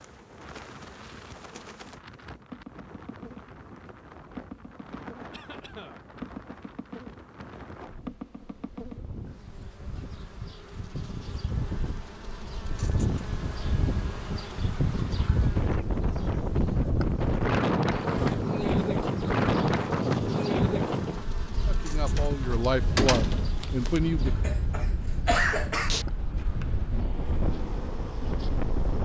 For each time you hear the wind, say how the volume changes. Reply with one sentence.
The wind can be heard from 0.0 to 28.9 s, getting louder then quieter.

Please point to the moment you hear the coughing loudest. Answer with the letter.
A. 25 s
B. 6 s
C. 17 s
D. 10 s
A.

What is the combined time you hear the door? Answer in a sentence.
You can hear the door for 2 seconds altogether.